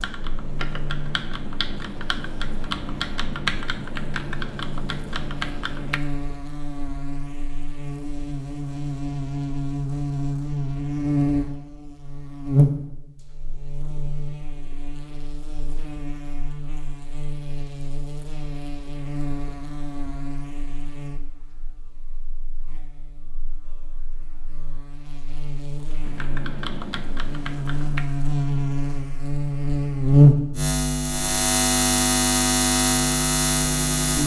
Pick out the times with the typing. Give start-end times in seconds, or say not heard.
0.0-6.0, 26.0-28.1.